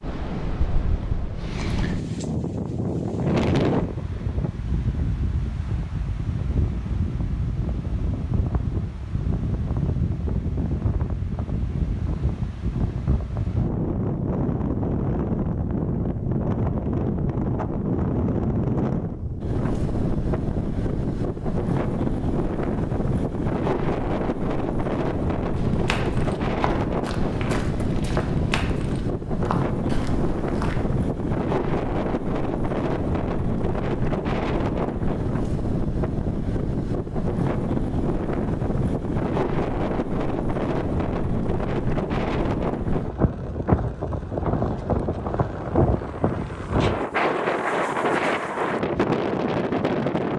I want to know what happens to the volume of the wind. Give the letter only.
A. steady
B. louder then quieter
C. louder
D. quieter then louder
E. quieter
A.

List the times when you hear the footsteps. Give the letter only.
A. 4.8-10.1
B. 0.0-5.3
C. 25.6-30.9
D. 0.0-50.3
C.